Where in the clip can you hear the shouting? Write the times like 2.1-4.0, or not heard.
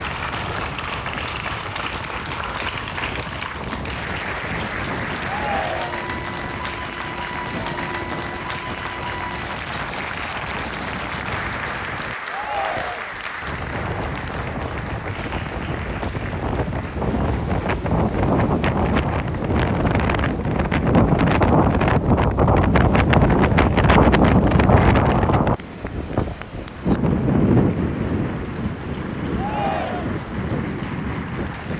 5.2-6.2, 12.2-13.2, 29.4-30.2.